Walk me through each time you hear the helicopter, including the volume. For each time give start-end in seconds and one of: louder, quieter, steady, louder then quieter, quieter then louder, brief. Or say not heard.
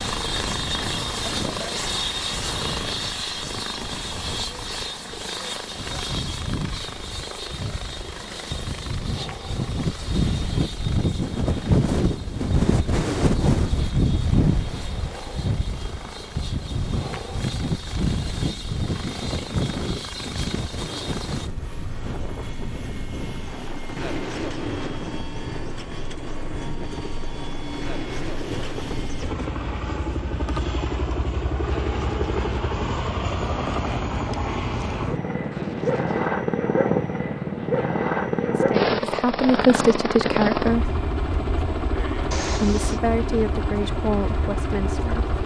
0.0-45.4 quieter then louder.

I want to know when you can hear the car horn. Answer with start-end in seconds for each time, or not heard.
42.3-43.0.